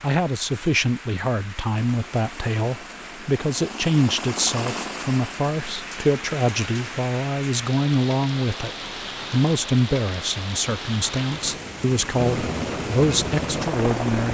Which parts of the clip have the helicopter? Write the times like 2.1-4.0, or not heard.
1.6-7.1, 12.1-14.2.